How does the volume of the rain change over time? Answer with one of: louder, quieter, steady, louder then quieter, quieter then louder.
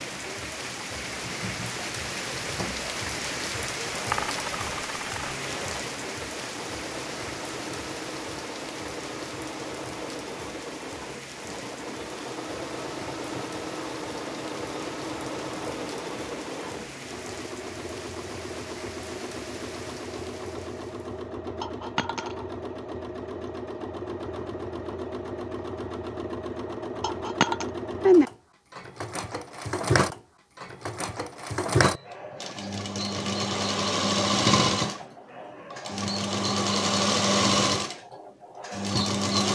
quieter.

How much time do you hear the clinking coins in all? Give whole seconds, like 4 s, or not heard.
3 s.